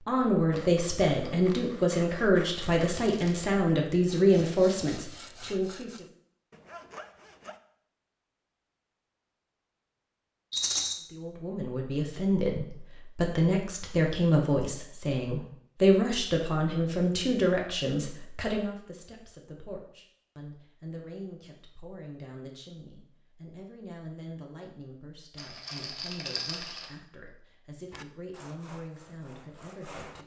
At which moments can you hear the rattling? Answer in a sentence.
You can hear the rattling from 2.5 to 3.5 s, from 10.5 to 10.9 s and from 25.4 to 26.9 s.